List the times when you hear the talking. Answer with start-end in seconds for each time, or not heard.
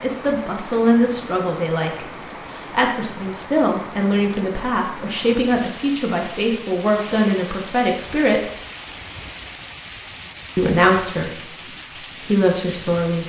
0.0-8.5, 10.6-11.5, 12.2-13.2.